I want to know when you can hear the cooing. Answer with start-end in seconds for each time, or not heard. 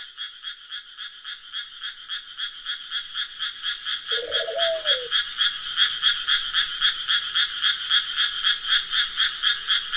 4.1-5.1.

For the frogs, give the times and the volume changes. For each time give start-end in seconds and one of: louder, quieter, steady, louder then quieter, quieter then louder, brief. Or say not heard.
0.0-9.9 louder.